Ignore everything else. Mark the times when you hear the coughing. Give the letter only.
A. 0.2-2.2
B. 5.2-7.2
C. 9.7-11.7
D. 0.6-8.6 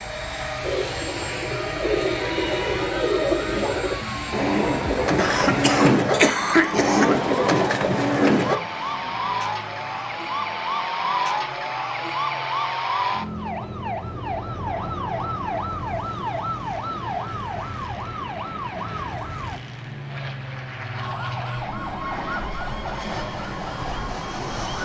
B.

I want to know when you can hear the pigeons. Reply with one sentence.
The pigeons can be heard from 0.6 to 8.6 s.